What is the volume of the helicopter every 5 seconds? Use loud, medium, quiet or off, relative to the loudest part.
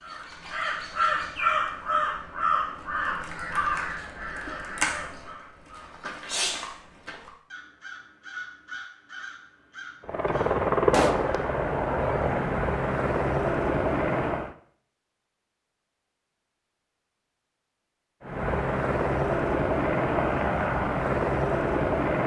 off, off, loud, loud, loud.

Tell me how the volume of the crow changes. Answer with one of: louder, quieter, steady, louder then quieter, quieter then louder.
quieter.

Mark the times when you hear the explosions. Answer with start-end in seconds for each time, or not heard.
10.9-11.3.